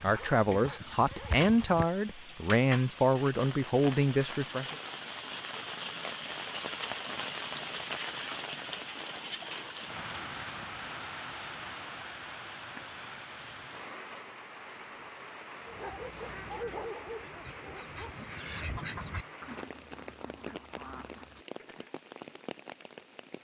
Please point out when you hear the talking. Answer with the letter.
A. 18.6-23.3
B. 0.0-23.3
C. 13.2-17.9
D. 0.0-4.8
D.